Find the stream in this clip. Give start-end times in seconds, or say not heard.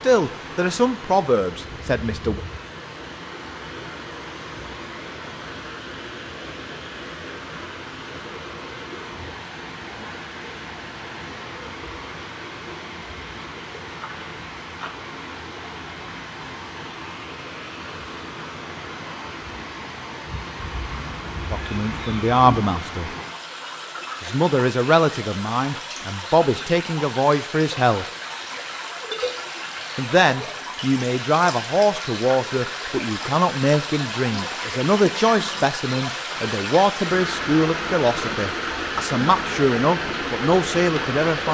0.0-41.4.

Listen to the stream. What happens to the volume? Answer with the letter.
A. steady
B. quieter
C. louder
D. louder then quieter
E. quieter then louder
C.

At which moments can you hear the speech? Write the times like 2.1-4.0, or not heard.
0.0-2.4, 21.5-23.1, 24.2-28.1, 29.9-41.4.